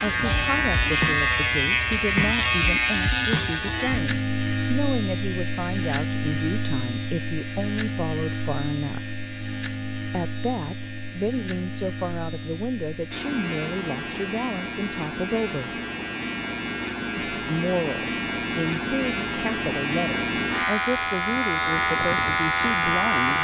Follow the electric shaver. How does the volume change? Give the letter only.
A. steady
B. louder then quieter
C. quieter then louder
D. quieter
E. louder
C.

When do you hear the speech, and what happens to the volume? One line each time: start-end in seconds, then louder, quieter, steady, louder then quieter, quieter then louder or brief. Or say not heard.
0.0-9.1 steady
10.1-15.8 steady
17.3-23.3 steady.